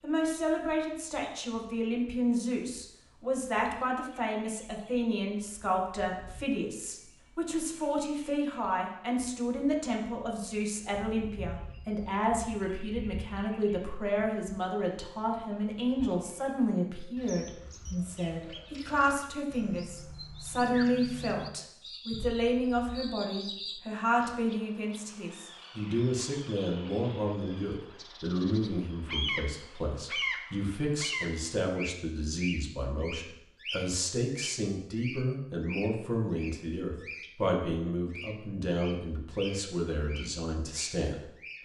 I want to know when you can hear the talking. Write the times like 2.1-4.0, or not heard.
0.0-41.2.